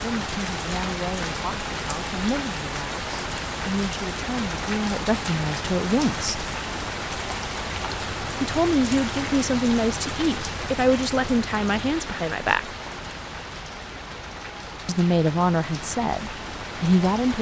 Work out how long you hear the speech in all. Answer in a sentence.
The speech can be heard for 13 seconds in total.